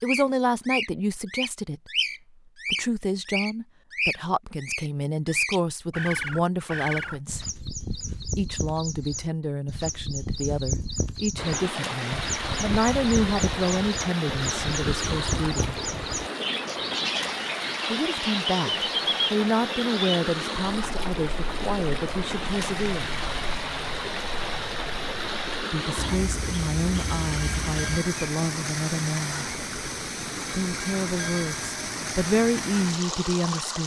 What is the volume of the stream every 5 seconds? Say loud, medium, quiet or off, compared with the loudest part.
off, off, loud, loud, loud, loud, loud.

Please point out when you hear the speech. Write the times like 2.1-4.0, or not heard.
0.0-1.8, 2.7-7.5, 8.3-15.8, 17.9-23.1, 25.7-29.4, 30.5-33.8.